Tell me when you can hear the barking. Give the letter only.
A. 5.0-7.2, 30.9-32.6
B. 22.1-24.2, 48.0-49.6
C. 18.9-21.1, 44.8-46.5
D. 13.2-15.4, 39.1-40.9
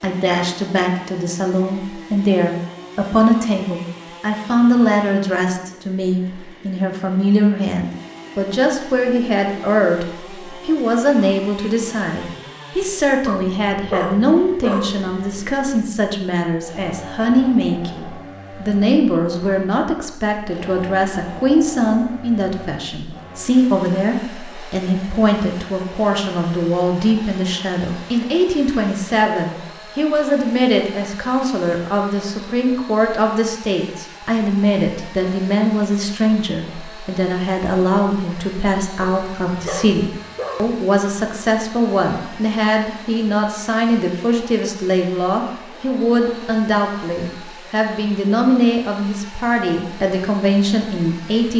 D.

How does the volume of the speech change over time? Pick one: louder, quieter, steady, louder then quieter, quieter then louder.
steady.